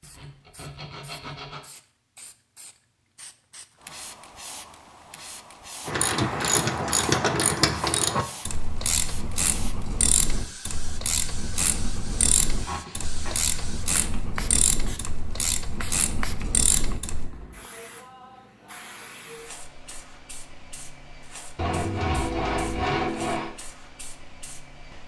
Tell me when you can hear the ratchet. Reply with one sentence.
The ratchet can be heard from 5.8 to 17.3 s.